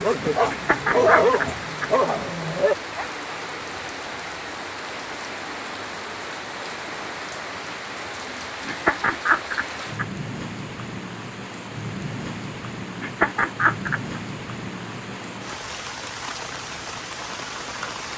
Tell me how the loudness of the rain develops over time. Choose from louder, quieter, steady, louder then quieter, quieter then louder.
steady.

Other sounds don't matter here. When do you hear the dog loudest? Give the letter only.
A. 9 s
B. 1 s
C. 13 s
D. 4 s
B.